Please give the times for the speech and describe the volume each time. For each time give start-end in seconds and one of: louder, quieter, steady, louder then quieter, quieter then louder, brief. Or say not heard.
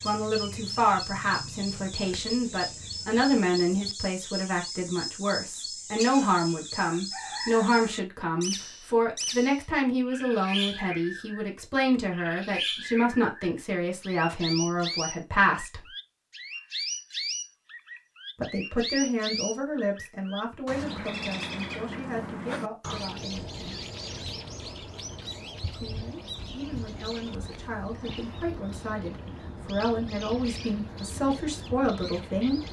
0.1-15.9 steady
18.4-23.8 quieter
25.7-32.6 louder.